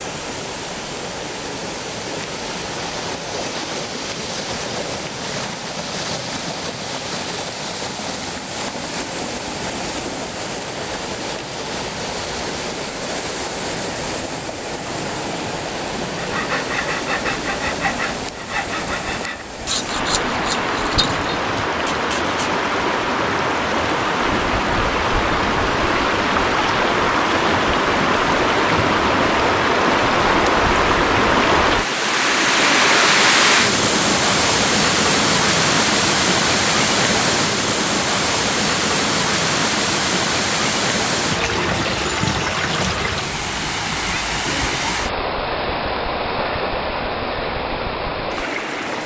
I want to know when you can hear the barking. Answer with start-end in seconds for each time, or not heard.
not heard.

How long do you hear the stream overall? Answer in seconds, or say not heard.
49 s.